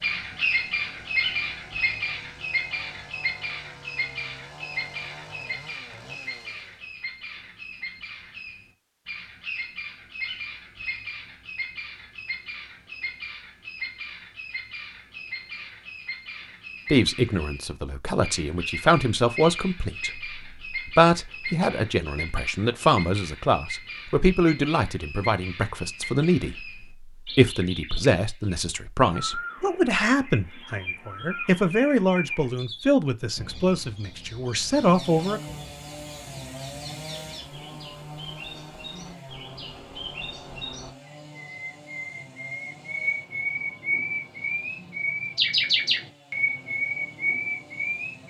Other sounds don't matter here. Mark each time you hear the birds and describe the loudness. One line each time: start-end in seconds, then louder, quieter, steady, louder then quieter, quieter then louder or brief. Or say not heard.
0.0-48.2 quieter then louder.